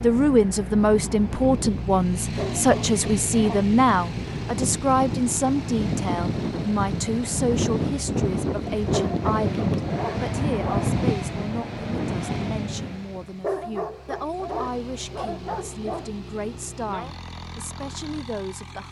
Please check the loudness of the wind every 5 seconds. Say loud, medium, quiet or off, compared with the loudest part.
medium, loud, loud, off.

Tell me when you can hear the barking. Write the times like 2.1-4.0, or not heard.
2.4-3.8, 8.9-10.9, 13.4-16.1.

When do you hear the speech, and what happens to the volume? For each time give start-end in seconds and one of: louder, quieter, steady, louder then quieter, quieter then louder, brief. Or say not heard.
0.0-18.8 quieter.